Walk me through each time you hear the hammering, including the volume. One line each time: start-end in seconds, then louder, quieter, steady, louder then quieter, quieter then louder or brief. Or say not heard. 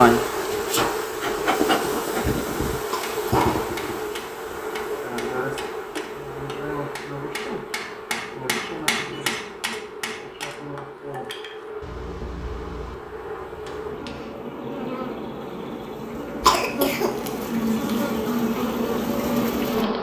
3.0-14.3 louder then quieter.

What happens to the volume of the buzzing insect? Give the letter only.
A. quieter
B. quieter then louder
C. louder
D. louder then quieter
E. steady
B.